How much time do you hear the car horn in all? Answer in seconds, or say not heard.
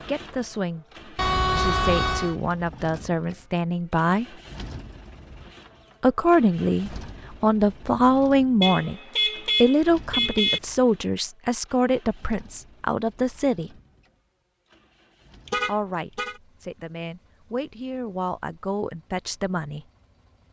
4 s.